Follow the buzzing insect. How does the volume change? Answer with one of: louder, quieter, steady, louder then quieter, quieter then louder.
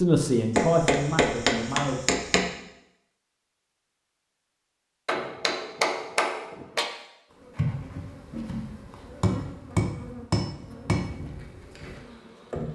quieter.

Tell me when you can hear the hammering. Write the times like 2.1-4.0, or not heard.
0.6-2.5, 5.0-6.8, 9.2-11.1.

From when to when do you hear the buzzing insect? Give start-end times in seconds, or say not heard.
7.3-12.7.